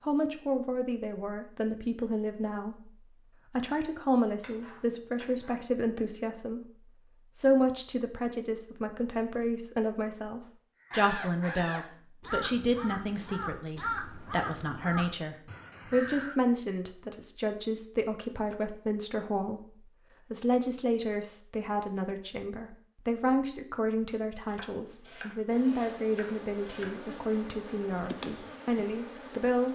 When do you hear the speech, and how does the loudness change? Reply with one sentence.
The speech can be heard from 0.0 to 29.7 s, at a steady volume.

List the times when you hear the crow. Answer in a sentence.
You can hear the crow from 10.8 to 16.4 s.